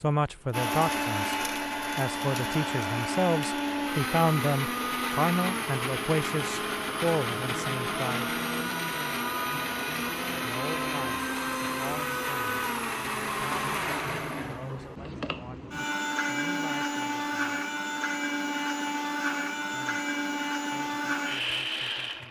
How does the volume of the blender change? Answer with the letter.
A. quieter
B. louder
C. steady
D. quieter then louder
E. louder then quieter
C.